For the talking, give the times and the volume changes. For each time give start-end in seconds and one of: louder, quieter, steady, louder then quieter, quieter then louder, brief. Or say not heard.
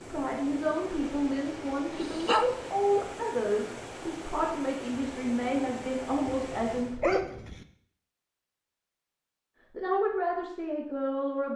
0.0-7.3 steady
9.7-11.5 brief.